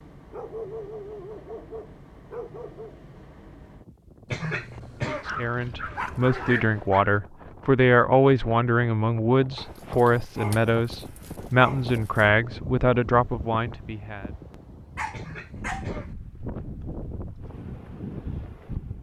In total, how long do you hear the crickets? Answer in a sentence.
The crickets can't be heard in this clip.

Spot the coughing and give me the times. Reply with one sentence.
The coughing can be heard from 4.2 to 5.3 s and from 15.1 to 16.1 s.